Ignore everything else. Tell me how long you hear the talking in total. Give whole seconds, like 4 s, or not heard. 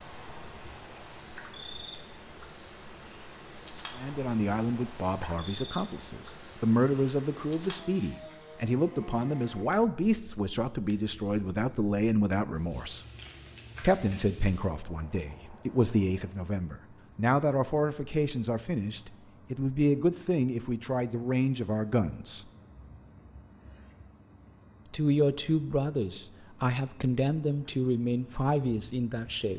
22 s.